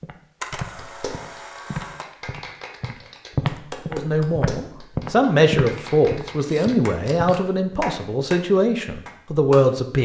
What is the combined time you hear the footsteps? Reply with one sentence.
You can hear the footsteps for 8 seconds altogether.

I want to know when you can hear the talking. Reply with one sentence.
The talking can be heard from 3.9 to 9.9 s.